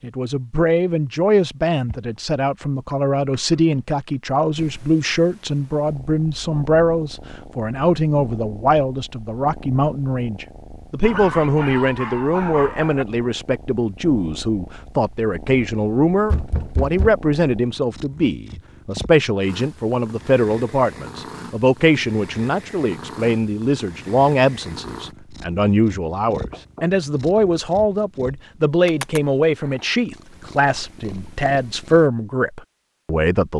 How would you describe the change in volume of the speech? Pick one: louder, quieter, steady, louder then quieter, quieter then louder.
steady.